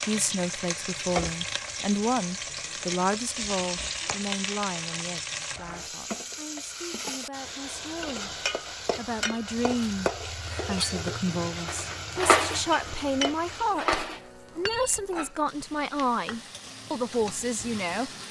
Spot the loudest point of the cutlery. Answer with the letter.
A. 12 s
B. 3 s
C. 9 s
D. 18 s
A.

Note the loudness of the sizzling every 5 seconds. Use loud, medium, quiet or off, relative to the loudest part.
loud, loud, loud, medium.